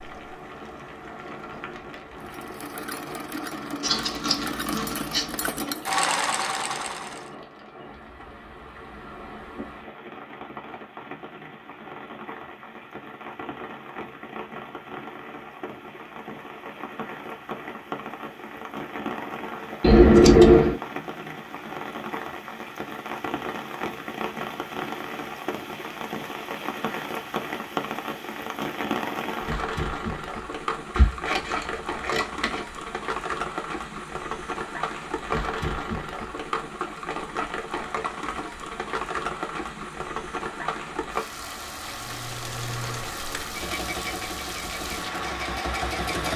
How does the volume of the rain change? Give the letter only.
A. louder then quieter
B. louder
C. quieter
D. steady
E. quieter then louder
B.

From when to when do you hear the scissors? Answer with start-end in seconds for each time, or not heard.
3.8-5.7, 19.8-20.8, 30.9-32.6.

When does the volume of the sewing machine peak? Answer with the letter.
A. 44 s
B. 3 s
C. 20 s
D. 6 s
D.